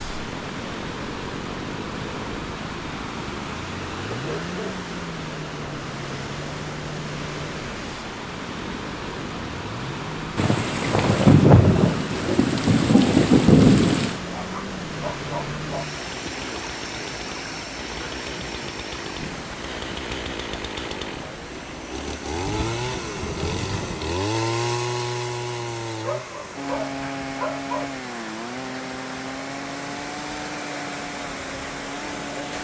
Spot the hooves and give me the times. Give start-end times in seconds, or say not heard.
not heard.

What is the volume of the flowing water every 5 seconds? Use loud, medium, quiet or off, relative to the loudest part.
loud, loud, loud, loud, medium, medium, loud.